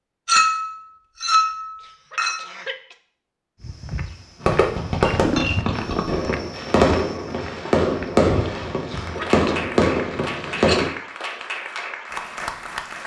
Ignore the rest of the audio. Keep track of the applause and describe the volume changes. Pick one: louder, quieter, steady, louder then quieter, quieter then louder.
steady.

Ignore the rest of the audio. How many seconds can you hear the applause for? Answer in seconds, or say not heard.
4 s.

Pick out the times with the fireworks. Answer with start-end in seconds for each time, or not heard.
4.4-10.9.